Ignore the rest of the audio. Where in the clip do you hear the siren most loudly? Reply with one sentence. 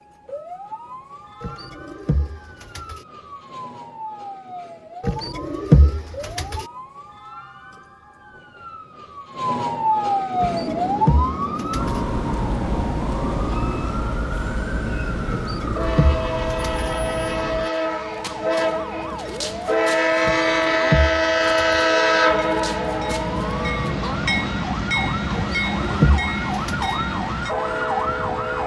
The loudest moment of the siren is at 10 seconds.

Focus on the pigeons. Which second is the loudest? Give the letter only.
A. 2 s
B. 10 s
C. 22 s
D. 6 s
D.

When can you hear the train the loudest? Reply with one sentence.
The loudest moment of the train is at 22 seconds.